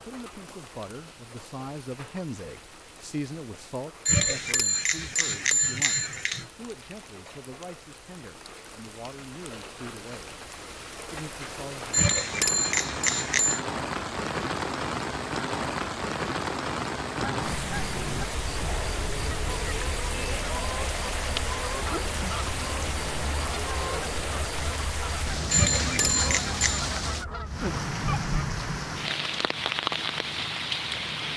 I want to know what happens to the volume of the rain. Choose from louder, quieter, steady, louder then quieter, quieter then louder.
louder.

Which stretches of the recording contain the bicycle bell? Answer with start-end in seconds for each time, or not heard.
4.0-6.5, 11.9-13.6, 25.5-26.9.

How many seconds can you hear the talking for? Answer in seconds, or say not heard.
11 s.